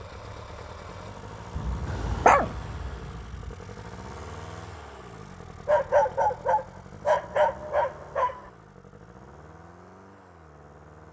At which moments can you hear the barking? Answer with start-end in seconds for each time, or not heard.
1.9-2.5, 5.7-8.4.